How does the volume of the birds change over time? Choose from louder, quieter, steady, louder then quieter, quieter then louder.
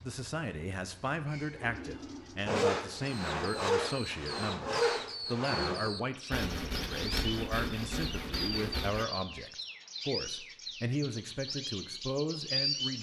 louder.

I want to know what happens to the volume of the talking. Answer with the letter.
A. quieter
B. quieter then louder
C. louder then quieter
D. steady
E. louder
D.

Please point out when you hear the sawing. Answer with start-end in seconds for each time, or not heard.
2.5-9.1.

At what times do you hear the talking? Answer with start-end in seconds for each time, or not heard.
0.0-12.9.